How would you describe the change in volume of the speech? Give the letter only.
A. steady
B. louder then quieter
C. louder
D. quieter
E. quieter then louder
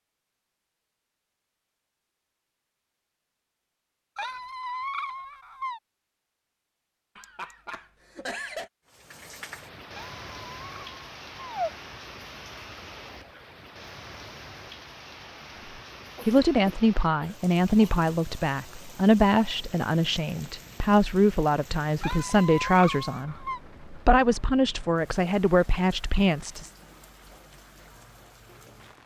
A.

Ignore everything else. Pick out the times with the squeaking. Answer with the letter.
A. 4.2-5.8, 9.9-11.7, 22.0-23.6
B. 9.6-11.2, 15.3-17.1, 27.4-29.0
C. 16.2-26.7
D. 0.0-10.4
A.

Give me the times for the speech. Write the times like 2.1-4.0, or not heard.
16.2-26.7.